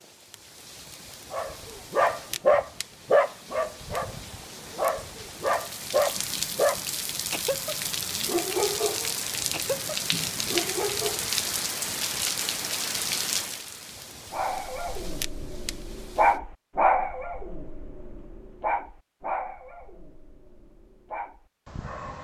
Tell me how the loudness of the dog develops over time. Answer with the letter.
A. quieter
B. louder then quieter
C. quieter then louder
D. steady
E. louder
A.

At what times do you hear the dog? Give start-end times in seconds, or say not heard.
1.3-11.3, 14.3-22.1.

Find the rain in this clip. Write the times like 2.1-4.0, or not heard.
0.0-16.4.